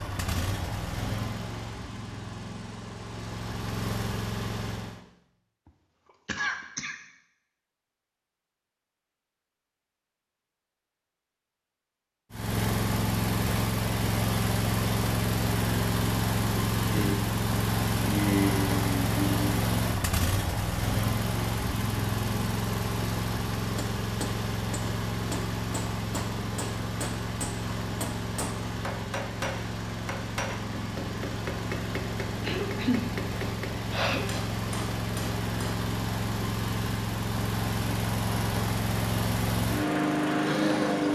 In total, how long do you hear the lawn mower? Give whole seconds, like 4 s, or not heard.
34 s.